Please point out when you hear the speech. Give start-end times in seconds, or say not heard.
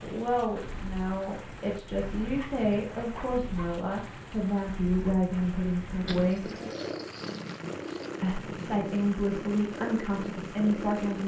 0.0-6.5, 8.2-11.2.